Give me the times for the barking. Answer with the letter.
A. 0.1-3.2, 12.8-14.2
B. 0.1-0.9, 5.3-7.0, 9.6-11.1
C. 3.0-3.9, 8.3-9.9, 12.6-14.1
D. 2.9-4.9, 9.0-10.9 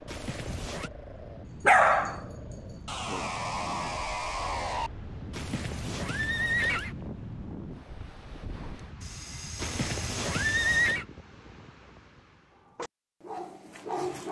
A.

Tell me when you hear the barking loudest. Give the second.
2 s.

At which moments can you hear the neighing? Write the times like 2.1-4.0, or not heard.
0.1-0.9, 5.3-7.0, 9.6-11.1.